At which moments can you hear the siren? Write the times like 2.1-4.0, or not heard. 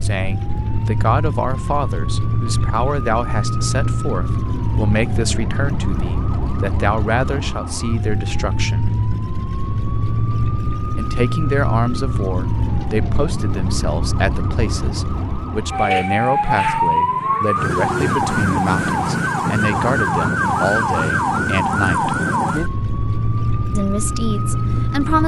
0.0-25.2.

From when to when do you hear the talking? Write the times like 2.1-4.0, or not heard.
0.0-8.9, 10.9-22.1, 23.8-25.2.